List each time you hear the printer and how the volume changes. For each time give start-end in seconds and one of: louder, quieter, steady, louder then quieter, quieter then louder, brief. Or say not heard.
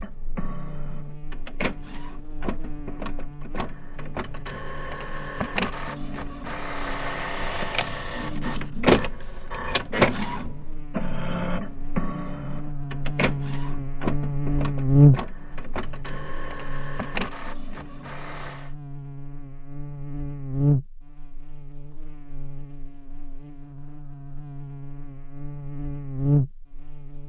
0.0-18.7 louder then quieter.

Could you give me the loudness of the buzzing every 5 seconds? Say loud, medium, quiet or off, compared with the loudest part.
quiet, quiet, loud, loud, medium, loud.